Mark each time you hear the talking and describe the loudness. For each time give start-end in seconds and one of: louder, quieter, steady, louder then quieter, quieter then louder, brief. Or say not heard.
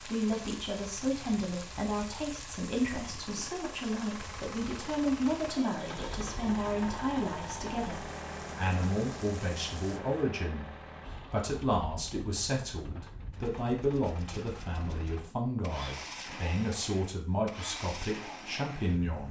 0.0-19.2 steady.